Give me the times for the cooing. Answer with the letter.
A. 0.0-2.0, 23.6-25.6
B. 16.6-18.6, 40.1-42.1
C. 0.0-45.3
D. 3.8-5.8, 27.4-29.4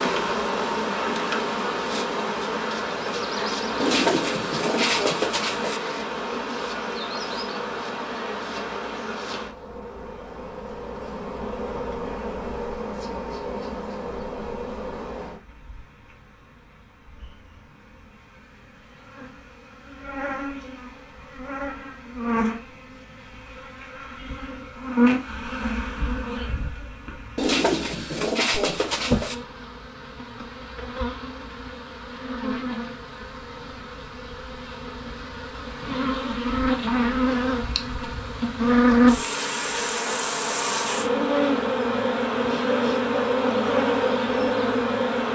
D.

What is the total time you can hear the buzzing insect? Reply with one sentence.
You can hear the buzzing insect for 45 seconds altogether.